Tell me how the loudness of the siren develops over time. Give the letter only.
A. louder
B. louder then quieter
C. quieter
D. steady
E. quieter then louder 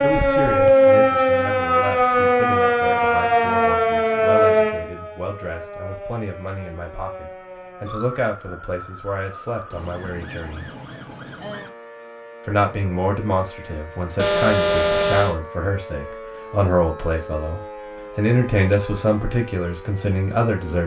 C.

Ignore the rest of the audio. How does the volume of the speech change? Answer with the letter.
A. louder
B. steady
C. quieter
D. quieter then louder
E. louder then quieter
A.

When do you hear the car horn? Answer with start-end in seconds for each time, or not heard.
14.2-15.3.